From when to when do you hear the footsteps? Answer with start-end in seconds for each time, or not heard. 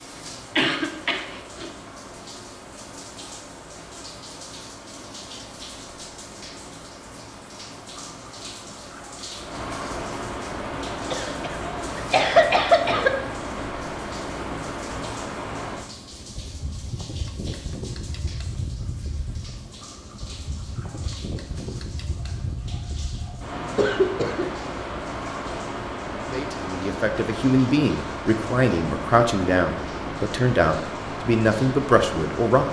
not heard.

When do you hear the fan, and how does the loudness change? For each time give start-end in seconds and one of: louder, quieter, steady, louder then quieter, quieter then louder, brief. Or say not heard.
0.0-32.6 louder.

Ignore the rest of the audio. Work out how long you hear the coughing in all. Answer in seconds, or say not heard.
4 s.